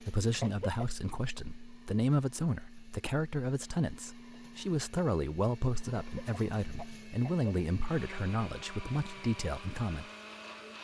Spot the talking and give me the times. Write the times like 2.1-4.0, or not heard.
0.0-10.1.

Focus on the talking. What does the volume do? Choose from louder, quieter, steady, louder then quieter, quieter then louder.
steady.